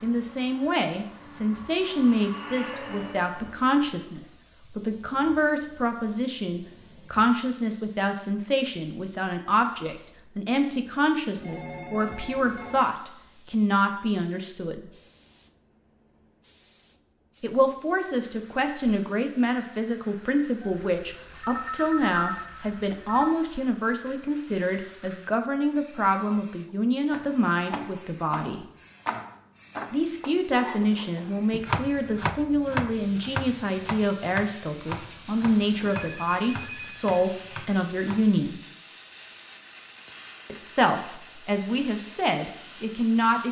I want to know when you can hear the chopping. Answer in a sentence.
The chopping can be heard from 27.1 to 38.2 s.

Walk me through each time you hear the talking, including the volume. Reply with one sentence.
You can hear the talking from 0.0 to 14.9 s, at a steady volume; from 17.4 to 28.6 s, at a steady volume; from 29.9 to 38.6 s, at a steady volume; and briefly from 40.5 to 43.4 s.